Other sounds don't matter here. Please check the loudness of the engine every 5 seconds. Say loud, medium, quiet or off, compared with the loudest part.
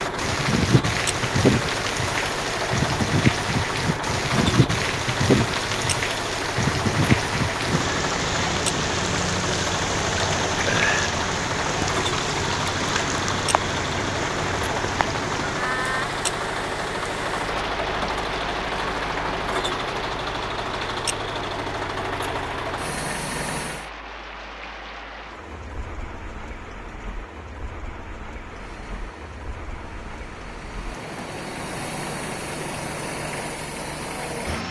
loud, loud, loud, loud, loud, quiet, medium.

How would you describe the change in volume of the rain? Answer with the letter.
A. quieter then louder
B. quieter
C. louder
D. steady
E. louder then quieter
B.